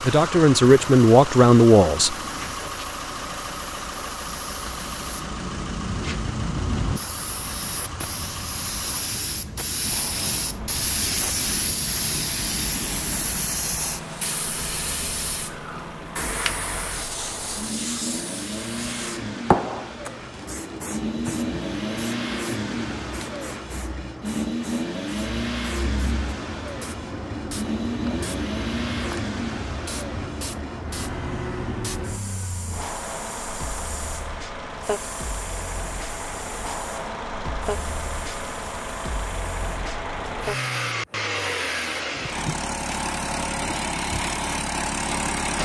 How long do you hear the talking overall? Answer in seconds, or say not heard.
2 s.